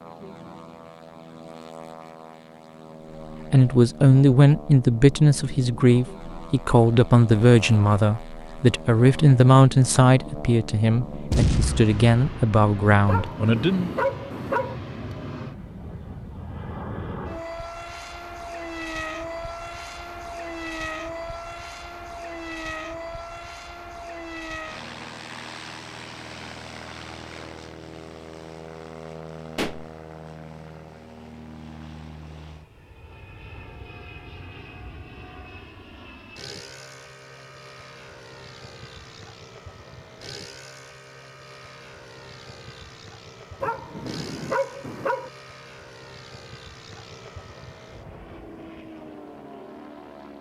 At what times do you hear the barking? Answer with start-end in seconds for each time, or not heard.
13.1-14.8, 43.6-45.3.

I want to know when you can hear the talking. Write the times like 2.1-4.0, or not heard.
3.5-13.9.